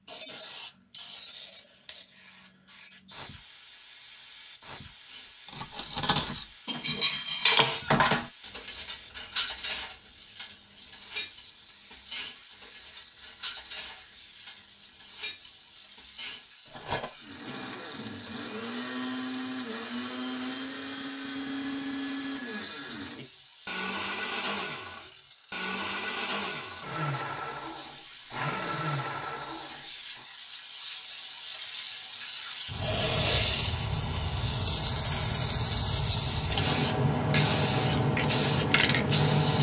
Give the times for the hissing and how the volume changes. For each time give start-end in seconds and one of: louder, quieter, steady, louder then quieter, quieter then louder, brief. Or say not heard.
0.0-39.5 louder.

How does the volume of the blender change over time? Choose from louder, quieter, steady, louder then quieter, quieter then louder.
steady.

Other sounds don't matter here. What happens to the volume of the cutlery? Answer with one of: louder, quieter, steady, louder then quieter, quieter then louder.
quieter.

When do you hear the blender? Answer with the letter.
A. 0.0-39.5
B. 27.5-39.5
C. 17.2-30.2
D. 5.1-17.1
C.